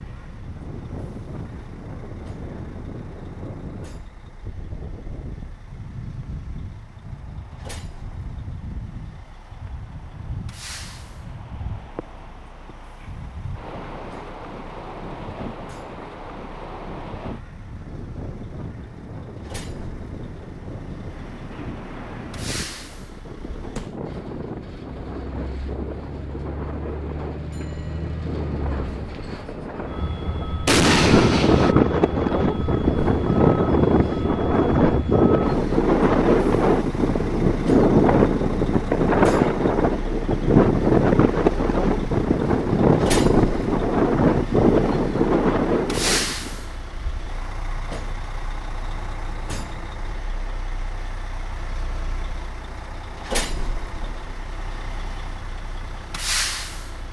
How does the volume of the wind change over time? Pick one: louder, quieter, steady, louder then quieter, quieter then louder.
louder.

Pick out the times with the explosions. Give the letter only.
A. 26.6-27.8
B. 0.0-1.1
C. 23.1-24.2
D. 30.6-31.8
D.